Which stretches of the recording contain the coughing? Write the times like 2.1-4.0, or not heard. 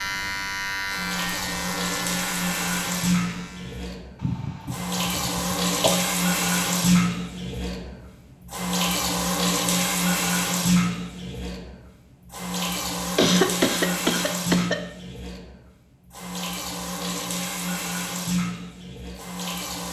4.2-6.0, 13.2-14.8.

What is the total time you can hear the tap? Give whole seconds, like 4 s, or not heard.
20 s.